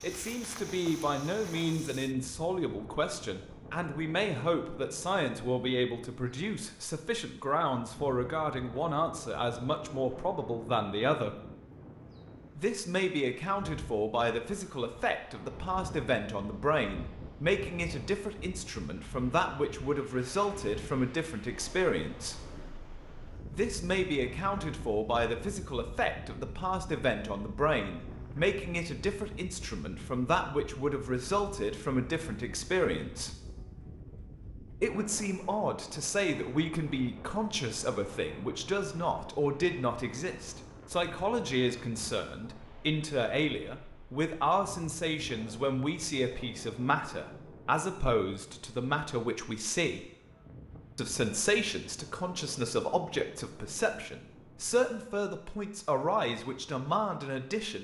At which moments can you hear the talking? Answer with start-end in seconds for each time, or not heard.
0.0-11.3, 12.6-22.4, 23.5-33.4, 34.8-50.0, 51.0-57.7.